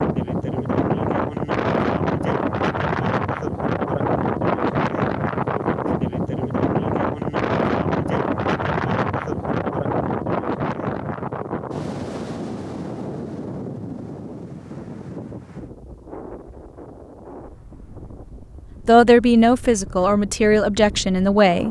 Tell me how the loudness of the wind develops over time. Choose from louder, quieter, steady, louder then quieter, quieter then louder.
quieter.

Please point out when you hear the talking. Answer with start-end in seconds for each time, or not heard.
18.9-21.6.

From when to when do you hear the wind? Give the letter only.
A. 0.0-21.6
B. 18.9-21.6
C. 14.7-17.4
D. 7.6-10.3
A.